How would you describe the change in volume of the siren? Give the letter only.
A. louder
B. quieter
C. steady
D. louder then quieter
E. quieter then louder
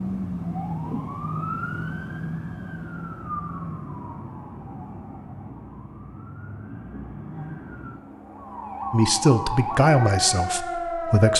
E.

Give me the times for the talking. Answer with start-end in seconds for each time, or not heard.
8.9-11.3.